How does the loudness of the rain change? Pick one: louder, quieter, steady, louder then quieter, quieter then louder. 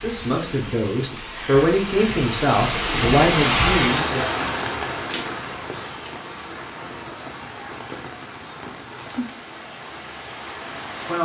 louder then quieter.